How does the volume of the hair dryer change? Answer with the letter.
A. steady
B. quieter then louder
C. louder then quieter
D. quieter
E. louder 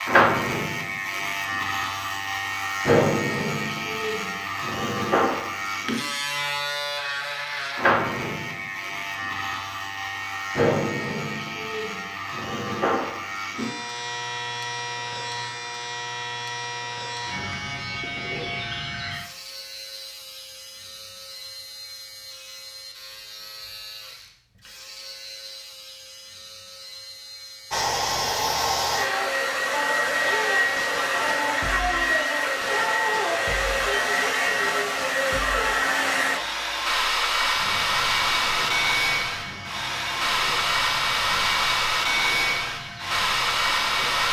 A.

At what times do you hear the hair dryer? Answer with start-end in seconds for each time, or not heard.
27.7-44.2.